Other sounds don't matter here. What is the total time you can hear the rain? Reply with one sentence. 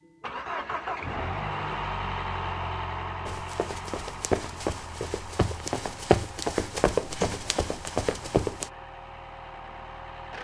The rain can't be heard in this clip.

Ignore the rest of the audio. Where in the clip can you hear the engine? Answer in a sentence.
The engine can be heard from 0.1 to 10.3 s.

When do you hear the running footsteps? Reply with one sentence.
You can hear the running footsteps from 3.2 to 8.7 s.